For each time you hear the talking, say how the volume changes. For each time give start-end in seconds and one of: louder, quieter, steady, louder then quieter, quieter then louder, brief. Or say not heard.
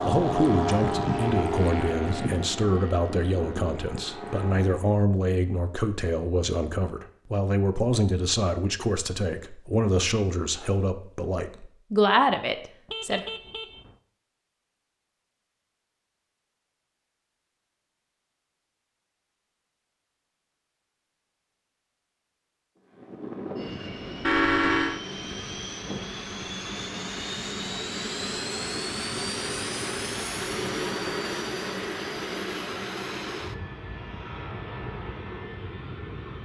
0.0-13.2 steady.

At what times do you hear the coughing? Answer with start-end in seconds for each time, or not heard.
not heard.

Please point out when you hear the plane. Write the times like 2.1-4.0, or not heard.
0.0-5.0, 22.9-36.4.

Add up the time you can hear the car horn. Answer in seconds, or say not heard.
2 s.